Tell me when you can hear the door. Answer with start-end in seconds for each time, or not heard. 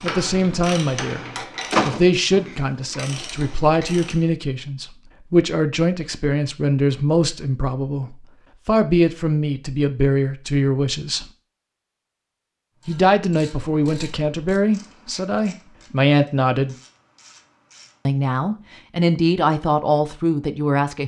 1.7-3.1.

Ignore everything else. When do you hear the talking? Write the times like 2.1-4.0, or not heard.
0.0-1.2, 1.9-11.2, 12.8-16.8, 18.1-21.0.